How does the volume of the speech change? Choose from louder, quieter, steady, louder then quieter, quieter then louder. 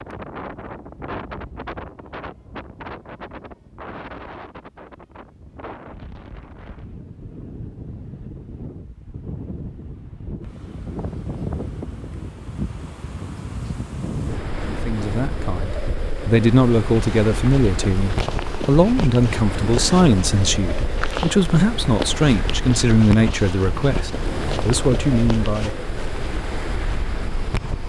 steady.